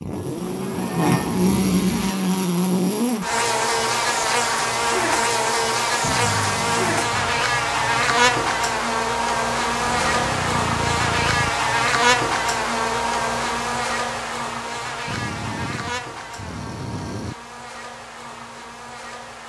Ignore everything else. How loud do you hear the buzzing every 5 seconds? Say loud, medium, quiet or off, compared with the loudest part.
loud, loud, loud, quiet.